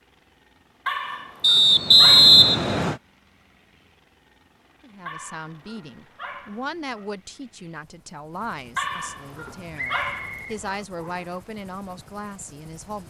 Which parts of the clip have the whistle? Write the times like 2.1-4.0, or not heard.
1.4-3.0, 9.8-11.3.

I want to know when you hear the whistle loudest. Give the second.
2 s.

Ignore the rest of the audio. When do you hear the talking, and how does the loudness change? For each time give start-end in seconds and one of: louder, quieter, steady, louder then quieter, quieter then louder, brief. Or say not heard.
4.8-13.0 steady.